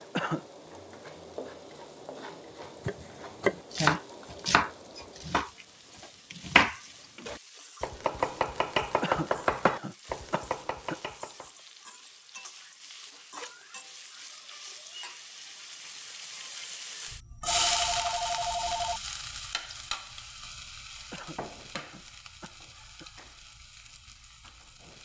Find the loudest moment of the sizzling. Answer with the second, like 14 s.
18 s.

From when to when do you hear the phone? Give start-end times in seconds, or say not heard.
17.4-19.0.